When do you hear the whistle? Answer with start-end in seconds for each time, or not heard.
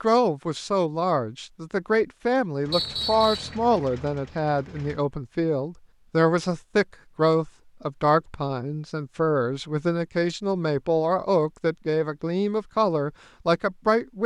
2.7-3.5.